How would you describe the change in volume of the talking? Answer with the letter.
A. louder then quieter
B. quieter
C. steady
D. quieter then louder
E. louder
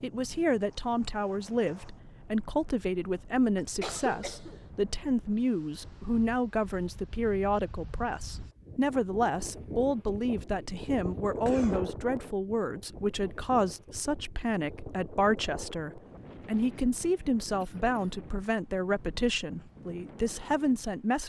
C.